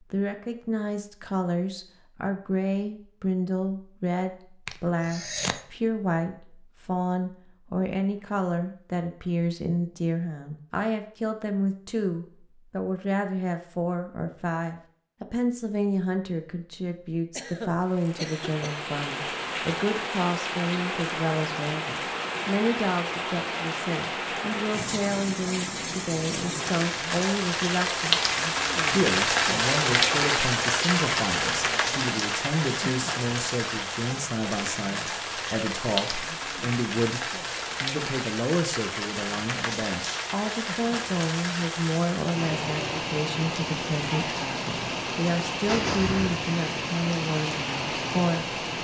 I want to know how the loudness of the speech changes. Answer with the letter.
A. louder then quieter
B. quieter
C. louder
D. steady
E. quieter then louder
D.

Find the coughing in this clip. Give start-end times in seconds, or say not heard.
4.7-5.6, 17.4-18.9, 45.6-46.4.